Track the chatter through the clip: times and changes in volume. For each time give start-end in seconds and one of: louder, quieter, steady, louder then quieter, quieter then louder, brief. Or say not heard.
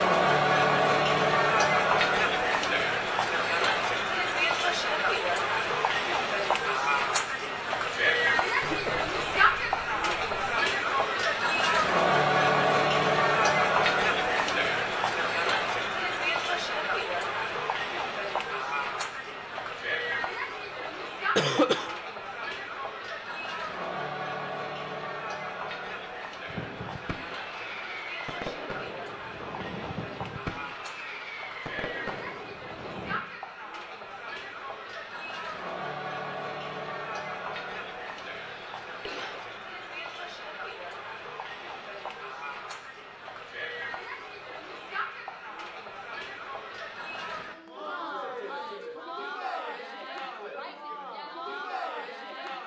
0.0-52.6 quieter.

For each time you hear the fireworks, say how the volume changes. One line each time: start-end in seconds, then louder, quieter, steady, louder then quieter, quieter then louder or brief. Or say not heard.
26.4-33.2 steady.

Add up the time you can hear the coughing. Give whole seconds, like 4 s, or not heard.
3 s.